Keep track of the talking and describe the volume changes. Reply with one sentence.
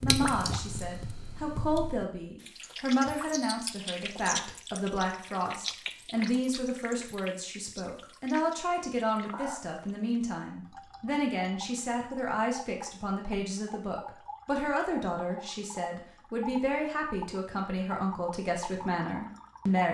The volume of the talking stays about the same.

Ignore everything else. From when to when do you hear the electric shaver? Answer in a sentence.
You can't hear the electric shaver here.